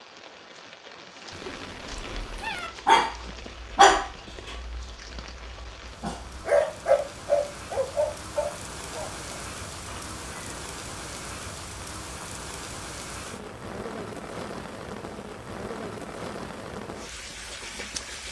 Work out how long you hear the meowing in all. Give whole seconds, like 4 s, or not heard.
2 s.